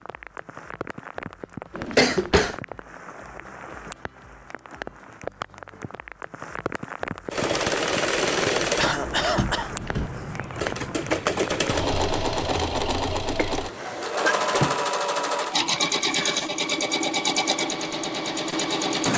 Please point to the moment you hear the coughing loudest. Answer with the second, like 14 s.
2 s.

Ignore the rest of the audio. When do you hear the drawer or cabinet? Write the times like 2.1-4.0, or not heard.
1.7-2.5, 8.8-10.1, 13.6-14.8.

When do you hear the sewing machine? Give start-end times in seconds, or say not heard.
7.3-19.1.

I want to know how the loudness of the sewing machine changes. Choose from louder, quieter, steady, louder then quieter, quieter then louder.
steady.